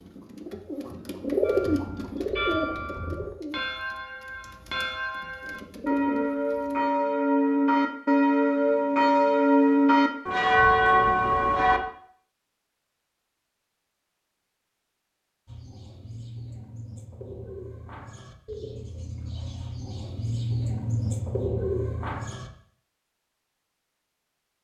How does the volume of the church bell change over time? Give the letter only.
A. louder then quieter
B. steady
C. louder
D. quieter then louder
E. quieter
C.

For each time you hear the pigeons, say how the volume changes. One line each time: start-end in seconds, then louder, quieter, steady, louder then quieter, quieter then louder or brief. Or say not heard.
0.0-6.8 quieter then louder
15.4-22.5 louder.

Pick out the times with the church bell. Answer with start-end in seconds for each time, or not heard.
1.4-11.8.